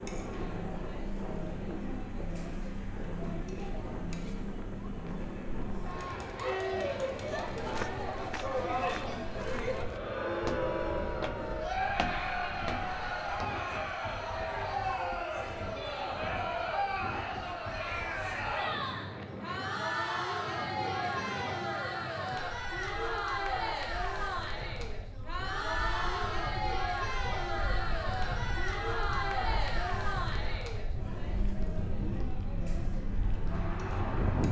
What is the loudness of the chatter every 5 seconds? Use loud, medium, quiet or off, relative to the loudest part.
medium, loud, loud, loud, loud, loud, medium.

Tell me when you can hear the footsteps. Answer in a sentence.
You can hear the footsteps from 7.5 to 13.3 s.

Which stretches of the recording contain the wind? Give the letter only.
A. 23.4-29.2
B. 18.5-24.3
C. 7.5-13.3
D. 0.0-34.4
D.